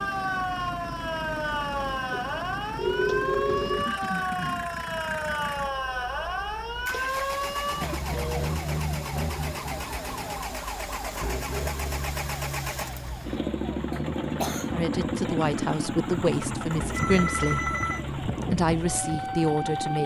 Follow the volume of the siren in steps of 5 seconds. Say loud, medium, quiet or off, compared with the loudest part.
loud, loud, medium, medium.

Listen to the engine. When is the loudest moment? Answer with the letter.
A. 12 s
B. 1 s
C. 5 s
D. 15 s
D.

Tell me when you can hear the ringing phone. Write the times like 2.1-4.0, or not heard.
2.1-3.9, 7.3-8.6, 16.9-18.1.